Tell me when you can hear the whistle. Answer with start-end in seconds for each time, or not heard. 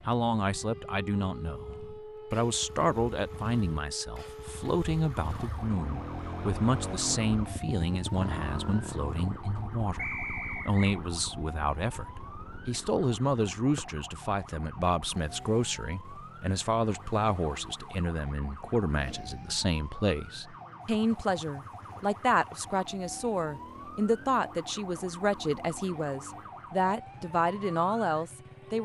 9.9-10.9.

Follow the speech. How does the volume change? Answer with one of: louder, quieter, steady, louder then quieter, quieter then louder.
steady.